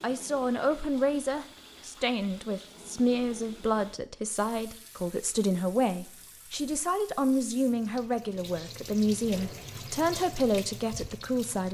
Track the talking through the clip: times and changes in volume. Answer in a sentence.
The talking can be heard from 0.0 to 11.6 s, at a steady volume.